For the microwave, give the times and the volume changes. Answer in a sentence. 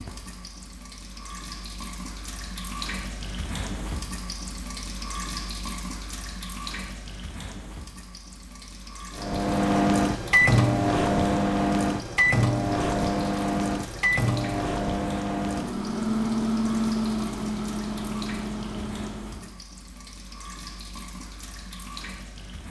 You can hear the microwave from 9.2 to 19.6 s, getting quieter.